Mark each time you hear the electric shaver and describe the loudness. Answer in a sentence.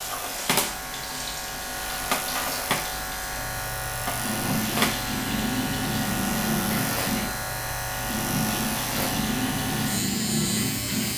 You can hear the electric shaver from 0.0 to 11.1 s, at a steady volume.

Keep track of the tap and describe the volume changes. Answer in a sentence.
The loudness of the tap goes up.